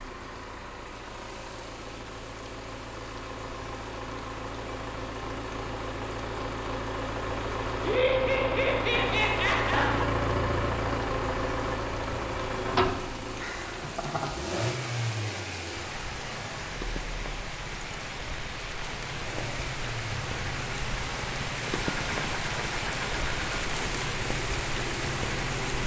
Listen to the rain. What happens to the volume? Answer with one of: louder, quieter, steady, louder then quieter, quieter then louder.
louder.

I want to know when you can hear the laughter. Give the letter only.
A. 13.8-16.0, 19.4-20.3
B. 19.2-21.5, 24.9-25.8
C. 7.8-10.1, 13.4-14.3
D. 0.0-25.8
C.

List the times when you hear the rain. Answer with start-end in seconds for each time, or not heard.
0.0-25.8.